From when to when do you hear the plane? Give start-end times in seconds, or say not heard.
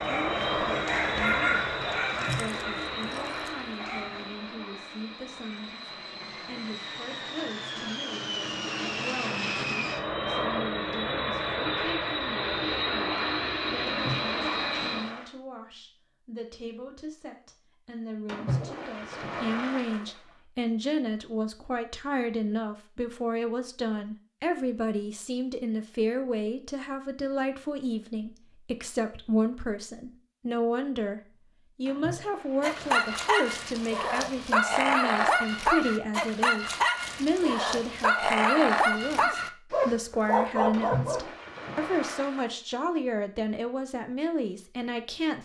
0.0-15.2.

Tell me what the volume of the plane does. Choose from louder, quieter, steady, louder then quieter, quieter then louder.
quieter then louder.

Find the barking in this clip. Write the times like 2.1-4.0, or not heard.
0.0-4.5, 32.6-41.2.